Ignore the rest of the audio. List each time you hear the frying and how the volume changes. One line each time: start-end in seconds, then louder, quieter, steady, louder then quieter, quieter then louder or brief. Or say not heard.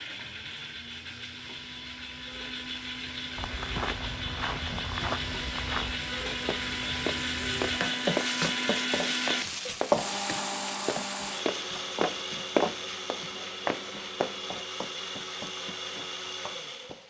0.0-17.0 louder then quieter.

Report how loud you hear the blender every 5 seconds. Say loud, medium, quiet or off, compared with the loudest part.
medium, loud, loud, medium.